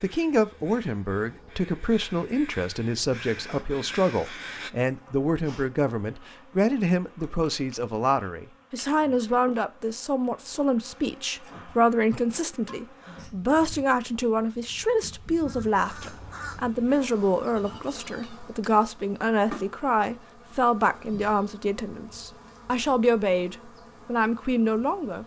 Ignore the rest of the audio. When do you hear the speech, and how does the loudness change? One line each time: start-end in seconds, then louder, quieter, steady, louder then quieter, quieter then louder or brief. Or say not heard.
0.0-25.2 steady.